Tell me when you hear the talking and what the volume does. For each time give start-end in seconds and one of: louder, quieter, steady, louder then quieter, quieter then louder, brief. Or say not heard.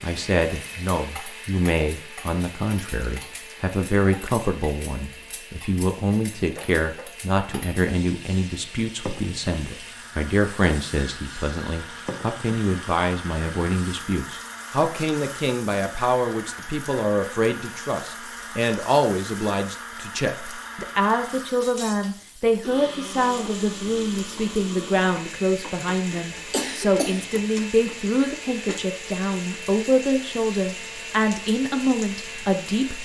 0.0-32.9 steady.